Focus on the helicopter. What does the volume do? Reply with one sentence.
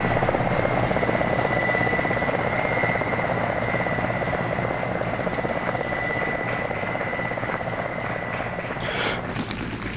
The loudness of the helicopter goes down.